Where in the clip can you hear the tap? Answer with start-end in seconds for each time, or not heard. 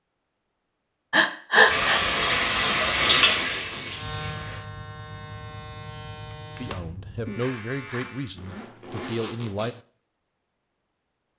1.6-4.7.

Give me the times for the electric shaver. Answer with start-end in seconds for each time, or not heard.
3.8-8.3.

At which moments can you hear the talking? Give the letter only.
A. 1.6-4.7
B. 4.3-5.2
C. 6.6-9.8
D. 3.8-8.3
C.